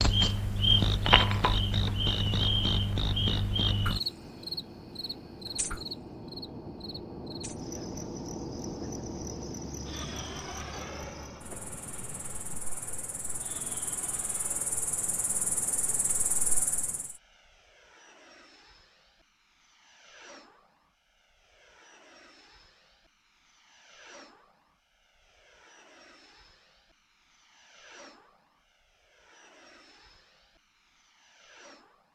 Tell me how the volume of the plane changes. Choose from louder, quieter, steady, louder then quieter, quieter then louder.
quieter.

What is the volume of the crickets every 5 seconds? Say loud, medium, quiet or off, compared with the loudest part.
loud, quiet, quiet, medium, off, off, off.